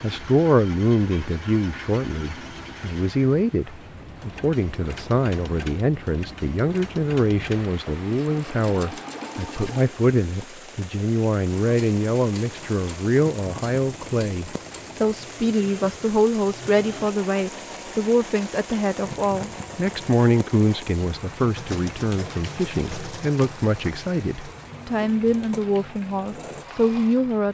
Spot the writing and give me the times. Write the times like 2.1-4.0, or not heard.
not heard.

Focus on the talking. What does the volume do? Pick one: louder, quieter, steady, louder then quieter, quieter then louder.
steady.